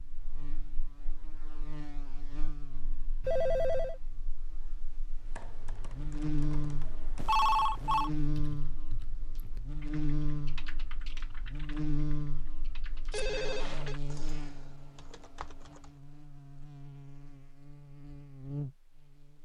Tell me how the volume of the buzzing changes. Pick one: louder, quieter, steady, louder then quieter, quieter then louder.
louder then quieter.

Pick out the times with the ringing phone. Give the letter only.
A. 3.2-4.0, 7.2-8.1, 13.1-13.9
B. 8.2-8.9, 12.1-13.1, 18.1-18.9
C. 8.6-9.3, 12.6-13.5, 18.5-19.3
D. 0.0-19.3
A.